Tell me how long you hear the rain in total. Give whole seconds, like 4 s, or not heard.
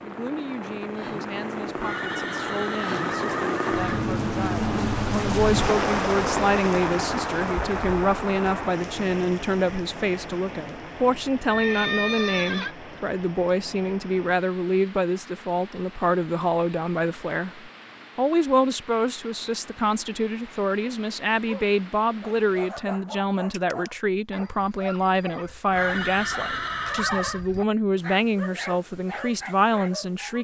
23 s.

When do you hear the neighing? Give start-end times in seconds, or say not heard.
1.8-4.1, 11.4-12.8, 25.7-27.4.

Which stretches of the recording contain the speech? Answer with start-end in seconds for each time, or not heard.
0.0-30.4.